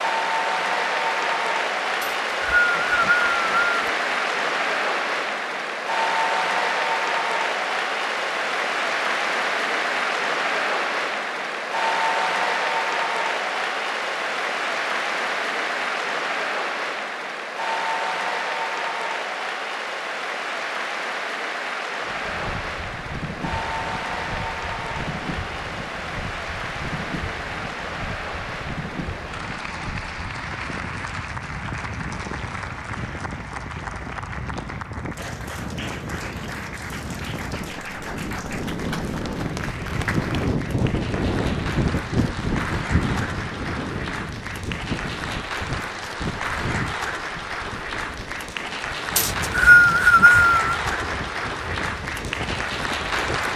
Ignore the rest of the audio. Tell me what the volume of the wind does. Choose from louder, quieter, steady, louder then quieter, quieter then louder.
louder then quieter.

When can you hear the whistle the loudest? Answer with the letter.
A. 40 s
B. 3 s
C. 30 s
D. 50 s
D.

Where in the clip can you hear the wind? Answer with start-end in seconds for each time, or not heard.
22.0-53.5.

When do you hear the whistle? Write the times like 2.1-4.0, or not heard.
2.0-3.9, 49.1-50.8.